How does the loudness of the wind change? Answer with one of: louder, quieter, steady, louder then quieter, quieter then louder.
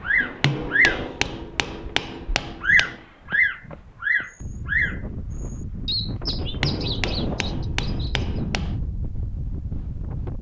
louder.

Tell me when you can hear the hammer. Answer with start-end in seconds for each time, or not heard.
0.2-3.0, 6.3-8.8.